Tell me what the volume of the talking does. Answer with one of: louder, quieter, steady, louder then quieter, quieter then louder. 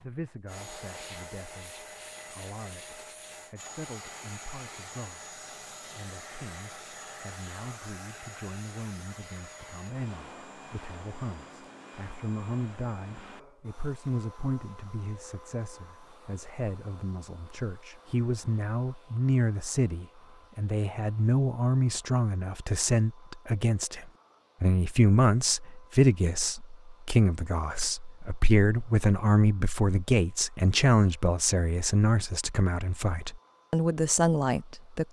louder.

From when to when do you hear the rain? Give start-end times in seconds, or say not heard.
not heard.